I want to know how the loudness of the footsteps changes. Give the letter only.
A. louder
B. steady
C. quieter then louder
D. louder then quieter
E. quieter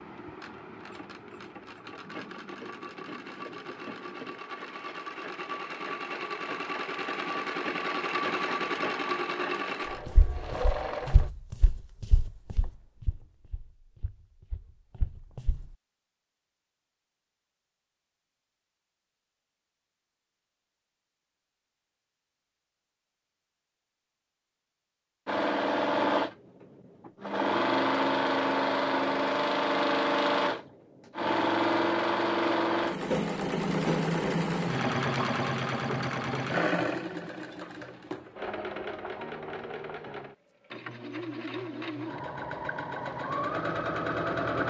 C.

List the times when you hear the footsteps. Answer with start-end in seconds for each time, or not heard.
10.1-15.7.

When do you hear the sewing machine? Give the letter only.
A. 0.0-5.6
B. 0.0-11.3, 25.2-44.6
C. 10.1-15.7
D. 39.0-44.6
B.